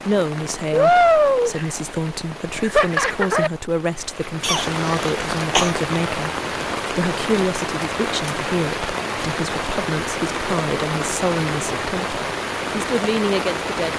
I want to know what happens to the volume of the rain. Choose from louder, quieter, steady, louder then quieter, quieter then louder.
quieter.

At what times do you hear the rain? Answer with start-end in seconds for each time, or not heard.
0.0-13.9.